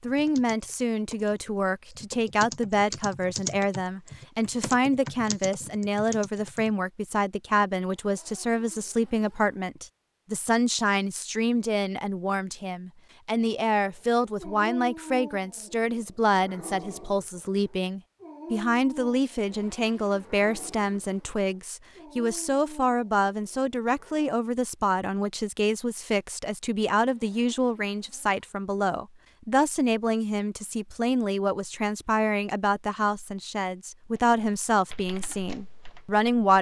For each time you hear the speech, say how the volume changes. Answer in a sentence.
You can hear the speech from 0.0 to 36.5 s, at a steady volume.